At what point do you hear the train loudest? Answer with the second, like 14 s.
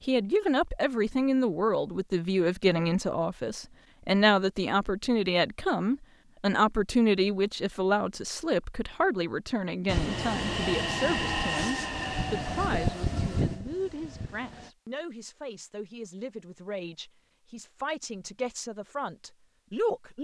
11 s.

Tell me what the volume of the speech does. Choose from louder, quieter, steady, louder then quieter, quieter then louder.
quieter.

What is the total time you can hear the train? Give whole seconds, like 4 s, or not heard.
5 s.